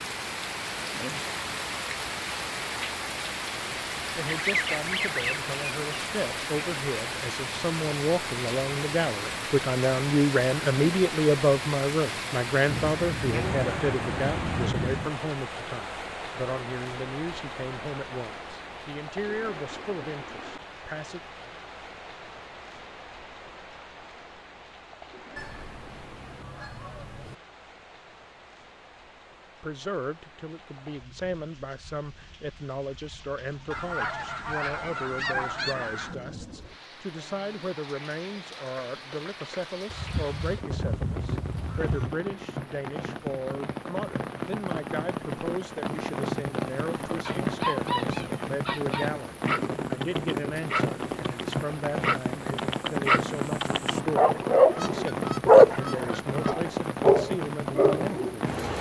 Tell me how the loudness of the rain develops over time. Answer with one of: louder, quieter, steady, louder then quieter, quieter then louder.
quieter then louder.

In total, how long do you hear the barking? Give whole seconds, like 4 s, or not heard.
11 s.